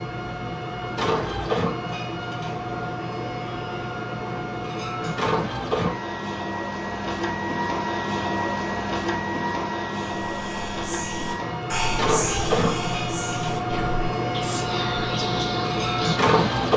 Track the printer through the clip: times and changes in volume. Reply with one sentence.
You can hear the printer from 0.0 to 16.7 s, at a steady volume.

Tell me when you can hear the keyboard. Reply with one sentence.
You can't hear the keyboard here.